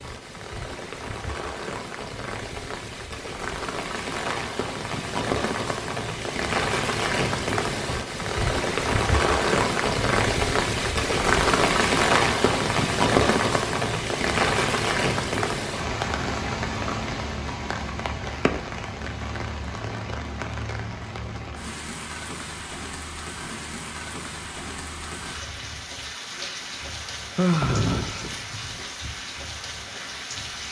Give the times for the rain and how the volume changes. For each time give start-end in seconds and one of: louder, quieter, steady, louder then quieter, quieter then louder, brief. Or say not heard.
0.0-30.6 louder then quieter.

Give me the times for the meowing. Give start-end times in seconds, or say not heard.
not heard.